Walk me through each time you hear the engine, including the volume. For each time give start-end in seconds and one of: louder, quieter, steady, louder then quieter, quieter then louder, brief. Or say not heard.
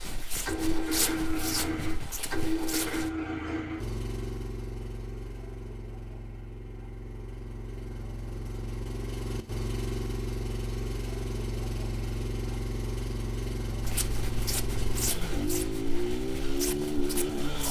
0.0-17.6 quieter then louder.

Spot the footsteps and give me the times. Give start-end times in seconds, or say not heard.
0.0-3.1, 13.8-17.6.